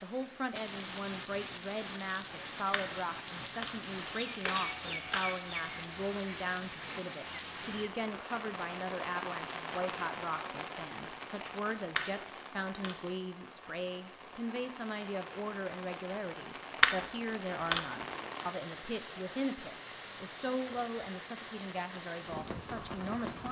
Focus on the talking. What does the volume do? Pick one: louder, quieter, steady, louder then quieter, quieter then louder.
steady.